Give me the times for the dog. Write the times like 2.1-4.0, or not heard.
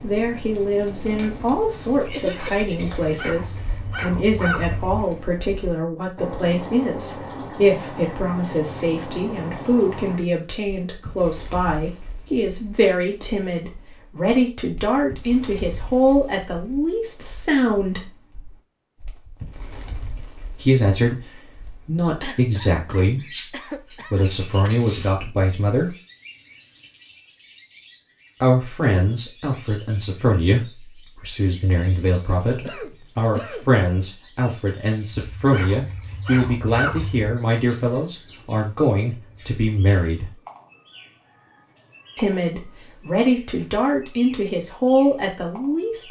3.0-5.1, 35.4-37.3.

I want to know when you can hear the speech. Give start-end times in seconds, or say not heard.
0.0-18.1, 20.6-25.9, 28.4-40.4, 42.1-46.0.